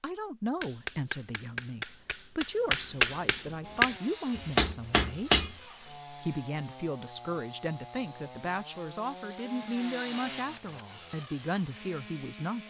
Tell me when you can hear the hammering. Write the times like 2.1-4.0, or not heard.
0.6-5.5.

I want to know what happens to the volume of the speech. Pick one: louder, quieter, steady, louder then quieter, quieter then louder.
steady.